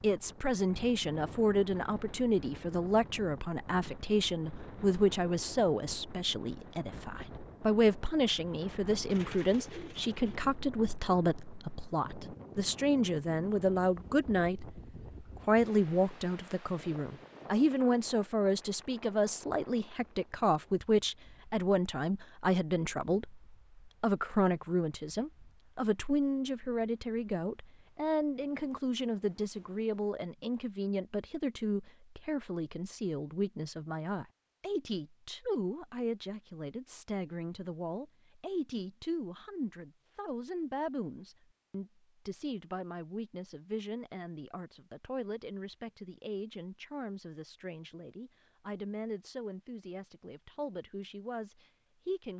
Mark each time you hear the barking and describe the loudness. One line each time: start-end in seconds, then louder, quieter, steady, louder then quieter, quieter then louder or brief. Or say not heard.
not heard.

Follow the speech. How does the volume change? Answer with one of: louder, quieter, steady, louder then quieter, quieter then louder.
quieter.